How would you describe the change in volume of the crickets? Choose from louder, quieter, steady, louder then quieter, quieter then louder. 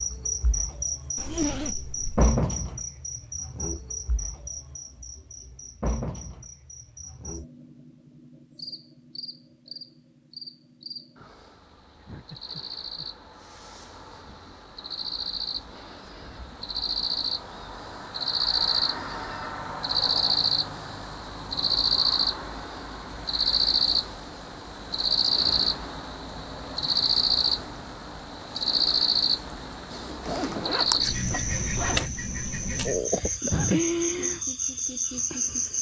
quieter then louder.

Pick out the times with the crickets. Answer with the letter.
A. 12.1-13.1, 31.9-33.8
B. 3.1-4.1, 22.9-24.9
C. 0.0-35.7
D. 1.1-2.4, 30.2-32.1
C.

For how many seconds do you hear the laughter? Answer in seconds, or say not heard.
3 s.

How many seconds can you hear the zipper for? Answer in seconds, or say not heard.
3 s.